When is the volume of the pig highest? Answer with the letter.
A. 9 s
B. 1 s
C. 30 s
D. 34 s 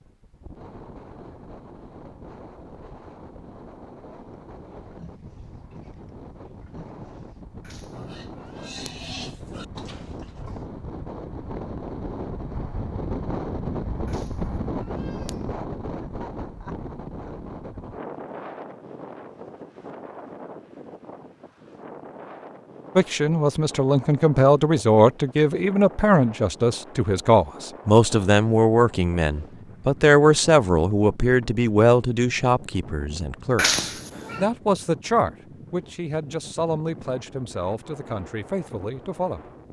A.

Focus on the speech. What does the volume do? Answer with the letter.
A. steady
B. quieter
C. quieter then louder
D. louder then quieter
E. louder
B.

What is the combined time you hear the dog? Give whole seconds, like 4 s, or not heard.
not heard.